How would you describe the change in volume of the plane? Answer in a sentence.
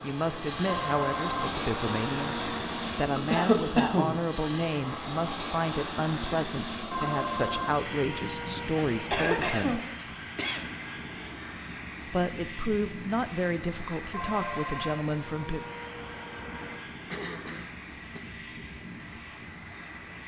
The volume of the plane goes down.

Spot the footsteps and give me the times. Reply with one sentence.
The footsteps can't be heard in this clip.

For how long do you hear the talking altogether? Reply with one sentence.
The talking can be heard for 13 seconds in total.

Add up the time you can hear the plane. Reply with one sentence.
The plane can be heard for 20 seconds in total.